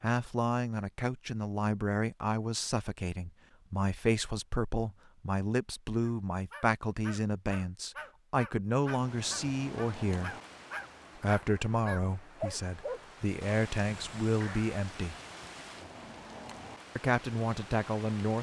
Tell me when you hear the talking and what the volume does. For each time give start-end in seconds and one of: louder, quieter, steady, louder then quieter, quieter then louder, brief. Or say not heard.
0.0-10.3 steady
11.2-15.2 quieter then louder
16.9-18.3 brief.